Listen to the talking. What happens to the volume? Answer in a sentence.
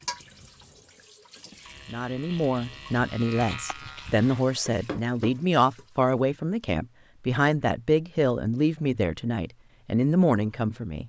The loudness of the talking stays about the same.